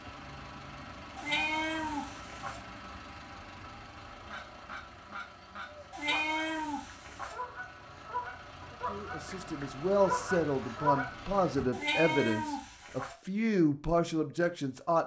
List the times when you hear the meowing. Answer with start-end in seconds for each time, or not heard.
1.1-2.6, 5.9-7.3, 11.7-13.2.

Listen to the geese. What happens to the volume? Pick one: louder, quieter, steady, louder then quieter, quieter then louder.
louder.